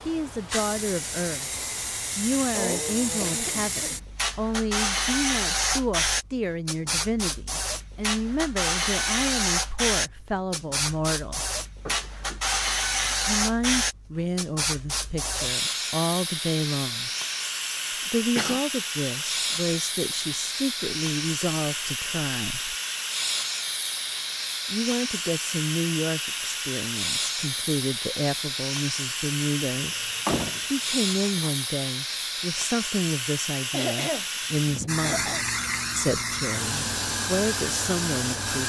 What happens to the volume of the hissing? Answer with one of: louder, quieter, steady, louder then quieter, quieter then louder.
steady.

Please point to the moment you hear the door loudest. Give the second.
30 s.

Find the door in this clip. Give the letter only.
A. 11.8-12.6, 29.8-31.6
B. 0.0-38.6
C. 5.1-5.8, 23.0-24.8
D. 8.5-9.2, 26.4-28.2
A.